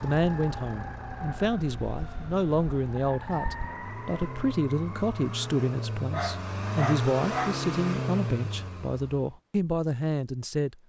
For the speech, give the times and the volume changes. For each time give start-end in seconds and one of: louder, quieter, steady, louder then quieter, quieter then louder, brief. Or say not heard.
0.0-10.8 steady.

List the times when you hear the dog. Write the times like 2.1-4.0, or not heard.
6.1-7.7.